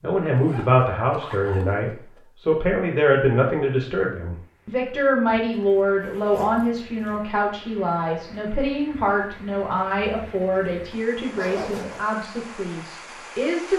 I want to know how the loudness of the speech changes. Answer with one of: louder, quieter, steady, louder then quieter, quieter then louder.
quieter.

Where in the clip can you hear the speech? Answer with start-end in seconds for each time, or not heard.
0.0-13.7.